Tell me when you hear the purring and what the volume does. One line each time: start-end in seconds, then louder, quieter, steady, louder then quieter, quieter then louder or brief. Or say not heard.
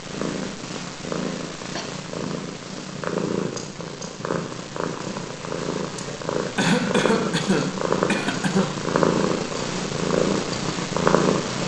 0.0-11.6 louder.